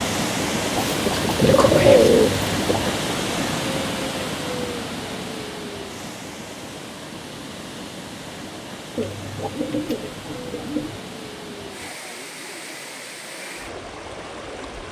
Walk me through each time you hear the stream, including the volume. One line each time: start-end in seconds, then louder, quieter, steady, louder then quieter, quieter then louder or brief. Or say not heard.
0.0-14.8 quieter.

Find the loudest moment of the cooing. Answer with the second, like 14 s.
2 s.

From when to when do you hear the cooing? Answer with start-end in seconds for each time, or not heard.
0.8-3.0, 8.9-11.0.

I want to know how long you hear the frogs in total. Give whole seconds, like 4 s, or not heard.
not heard.